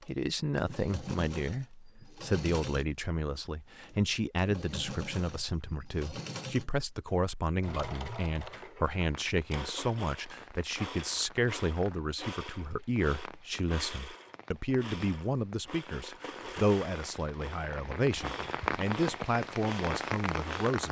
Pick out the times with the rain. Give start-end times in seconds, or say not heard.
8.9-20.8.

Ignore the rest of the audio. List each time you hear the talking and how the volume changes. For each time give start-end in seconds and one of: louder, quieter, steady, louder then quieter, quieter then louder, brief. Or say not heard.
0.1-20.8 steady.